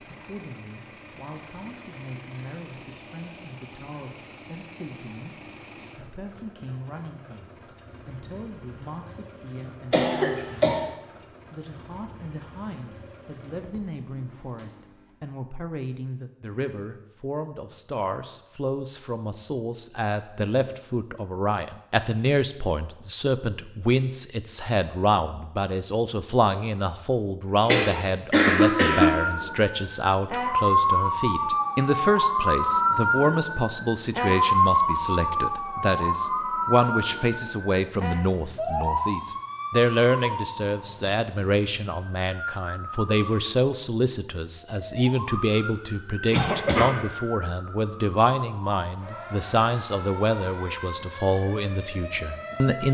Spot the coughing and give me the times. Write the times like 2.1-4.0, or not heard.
9.9-10.8, 27.6-29.1, 46.3-46.9.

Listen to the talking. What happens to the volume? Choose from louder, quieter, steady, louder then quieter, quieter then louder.
louder.